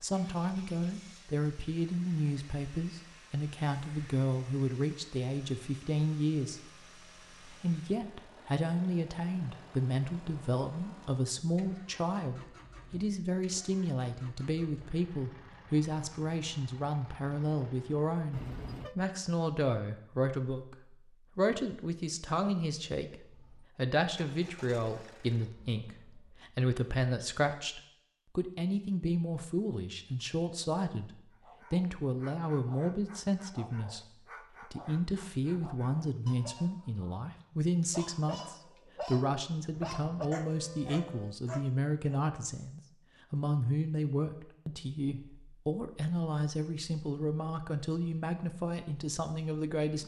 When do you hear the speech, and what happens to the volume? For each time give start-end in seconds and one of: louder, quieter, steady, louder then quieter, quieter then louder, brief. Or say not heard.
0.0-50.0 steady.